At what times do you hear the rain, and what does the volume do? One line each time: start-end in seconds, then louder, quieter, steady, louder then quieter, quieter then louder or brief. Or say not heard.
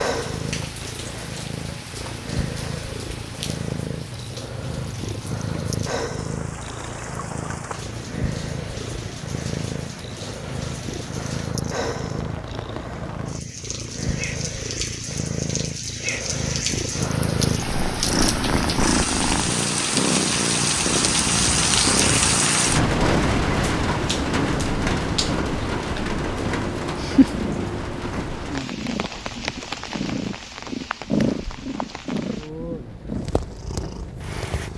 0.0-34.7 louder then quieter.